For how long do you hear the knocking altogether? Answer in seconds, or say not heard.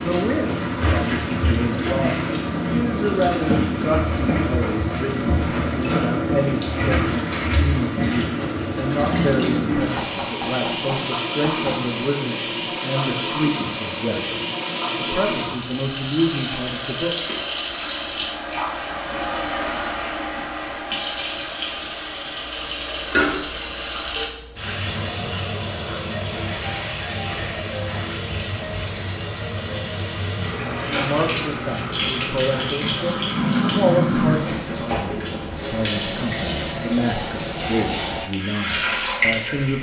2 s.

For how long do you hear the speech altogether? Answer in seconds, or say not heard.
26 s.